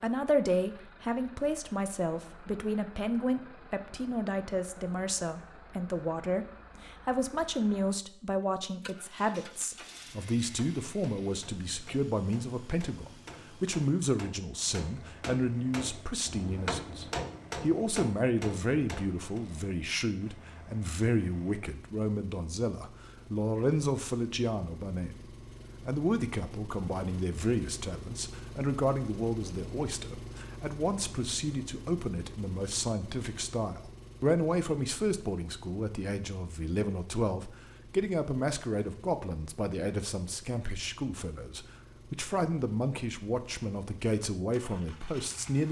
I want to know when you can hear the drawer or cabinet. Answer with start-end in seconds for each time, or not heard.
not heard.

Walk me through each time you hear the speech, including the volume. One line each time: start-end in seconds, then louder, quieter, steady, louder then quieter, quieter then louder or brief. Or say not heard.
0.0-45.6 steady.